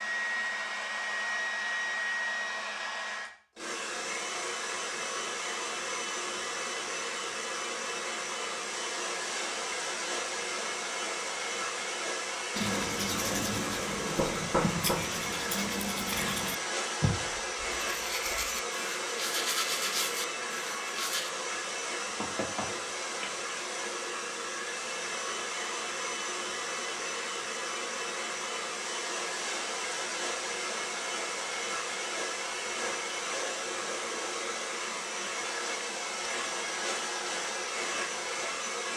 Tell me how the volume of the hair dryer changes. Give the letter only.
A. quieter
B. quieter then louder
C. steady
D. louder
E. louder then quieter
C.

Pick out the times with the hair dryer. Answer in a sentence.
You can hear the hair dryer from 0.0 to 38.9 s.